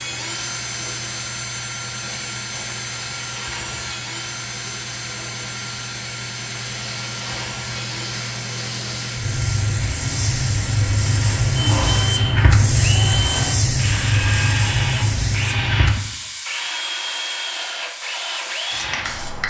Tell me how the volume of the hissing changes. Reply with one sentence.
The volume of the hissing goes up, then down.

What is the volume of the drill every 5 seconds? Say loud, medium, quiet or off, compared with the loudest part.
loud, medium, loud, loud.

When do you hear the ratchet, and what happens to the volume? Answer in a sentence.
You can't hear the ratchet here.